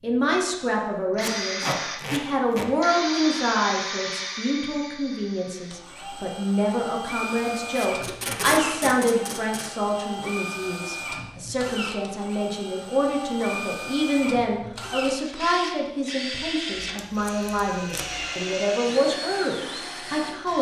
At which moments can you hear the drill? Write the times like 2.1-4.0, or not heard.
0.1-20.5.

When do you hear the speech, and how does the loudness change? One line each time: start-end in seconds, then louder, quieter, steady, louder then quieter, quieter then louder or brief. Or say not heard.
0.0-20.5 steady.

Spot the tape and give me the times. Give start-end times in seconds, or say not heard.
1.2-2.7, 7.8-9.8, 16.8-18.2.